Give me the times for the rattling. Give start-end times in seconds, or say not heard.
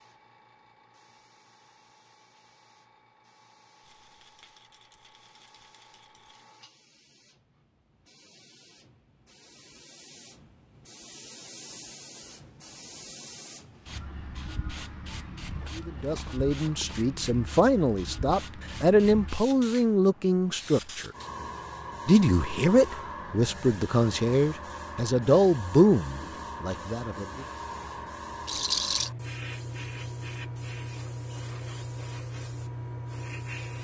3.8-6.5, 15.5-17.1, 28.4-29.1.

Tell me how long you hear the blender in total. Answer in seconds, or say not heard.
not heard.